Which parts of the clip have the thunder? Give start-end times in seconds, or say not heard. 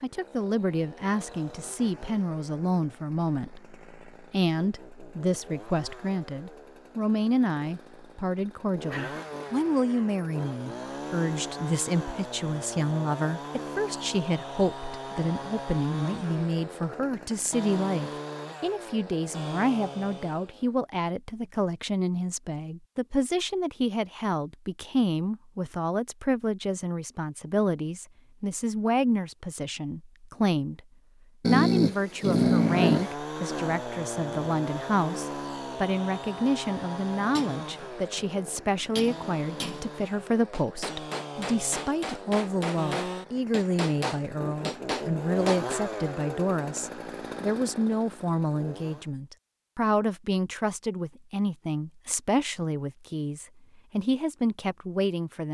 not heard.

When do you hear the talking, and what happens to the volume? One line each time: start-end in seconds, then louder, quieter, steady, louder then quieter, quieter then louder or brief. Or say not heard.
0.0-30.8 steady
31.4-55.4 steady.